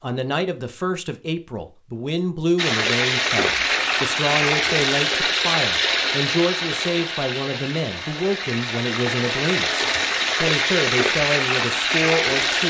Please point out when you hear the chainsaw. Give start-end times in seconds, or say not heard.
not heard.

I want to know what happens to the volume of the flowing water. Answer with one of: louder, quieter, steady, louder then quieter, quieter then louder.
quieter then louder.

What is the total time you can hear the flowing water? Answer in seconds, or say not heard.
10 s.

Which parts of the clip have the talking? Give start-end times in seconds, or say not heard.
0.0-12.6.